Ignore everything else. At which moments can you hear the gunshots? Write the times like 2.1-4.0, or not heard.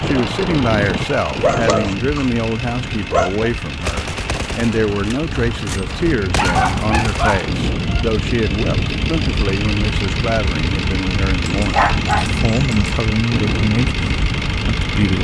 3.8-7.5.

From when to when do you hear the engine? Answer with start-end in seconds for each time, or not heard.
0.0-15.2.